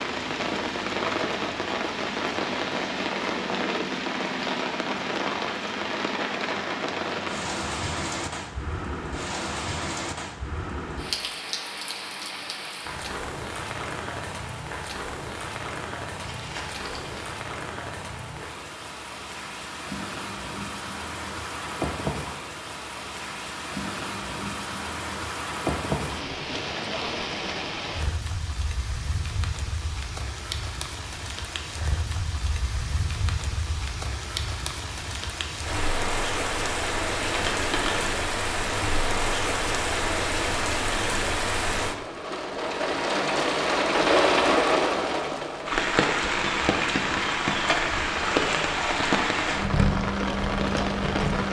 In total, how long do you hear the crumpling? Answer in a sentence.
You can hear the crumpling for 2 seconds altogether.